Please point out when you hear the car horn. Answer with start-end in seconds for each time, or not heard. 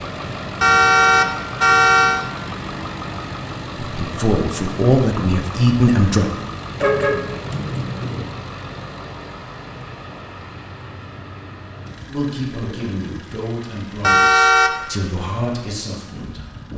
0.6-2.2, 6.8-8.2, 14.0-14.7.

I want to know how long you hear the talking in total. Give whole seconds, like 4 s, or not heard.
7 s.